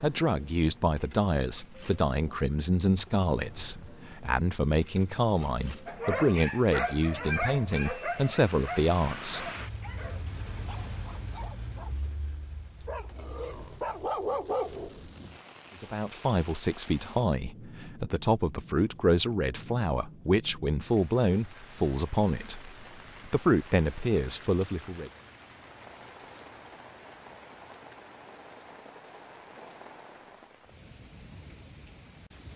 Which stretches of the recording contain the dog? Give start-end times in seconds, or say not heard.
5.8-15.1.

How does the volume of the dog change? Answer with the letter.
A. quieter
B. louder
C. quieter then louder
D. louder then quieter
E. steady
C.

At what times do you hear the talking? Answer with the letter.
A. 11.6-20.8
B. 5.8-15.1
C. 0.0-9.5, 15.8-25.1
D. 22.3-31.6
C.